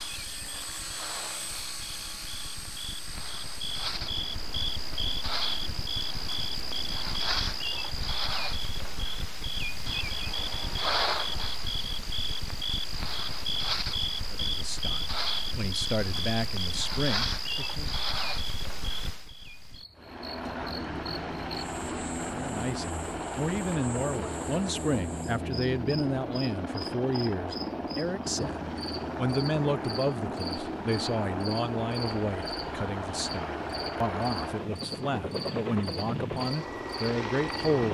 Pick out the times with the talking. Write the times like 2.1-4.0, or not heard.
14.3-17.9, 22.3-37.8.